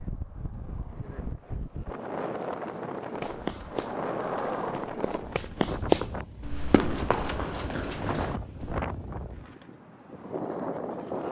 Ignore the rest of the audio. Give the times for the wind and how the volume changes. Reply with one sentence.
The wind can be heard from 0.0 to 11.2 s, at a steady volume.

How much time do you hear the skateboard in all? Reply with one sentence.
The skateboard can be heard for 7 seconds in total.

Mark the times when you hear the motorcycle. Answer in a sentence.
You can't hear the motorcycle here.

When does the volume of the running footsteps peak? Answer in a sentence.
The volume of the running footsteps peaks at 6 seconds.